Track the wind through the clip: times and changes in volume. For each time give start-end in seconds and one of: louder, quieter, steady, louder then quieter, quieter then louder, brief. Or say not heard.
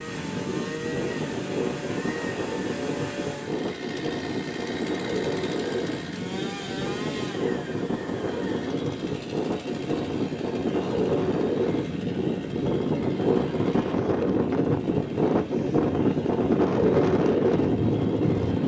0.0-18.6 louder.